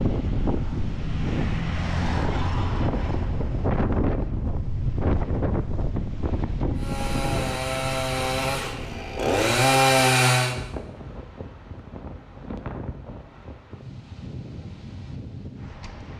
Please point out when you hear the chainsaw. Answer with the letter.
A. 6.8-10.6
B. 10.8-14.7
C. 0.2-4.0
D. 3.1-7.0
A.